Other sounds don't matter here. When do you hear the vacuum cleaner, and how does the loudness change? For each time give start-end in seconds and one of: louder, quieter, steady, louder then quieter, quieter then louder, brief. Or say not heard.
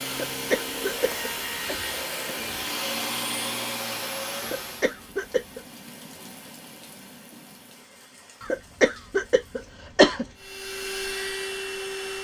0.0-5.0 steady
10.3-12.1 brief.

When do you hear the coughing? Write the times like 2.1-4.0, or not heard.
0.1-1.8, 4.4-5.6, 8.4-10.2.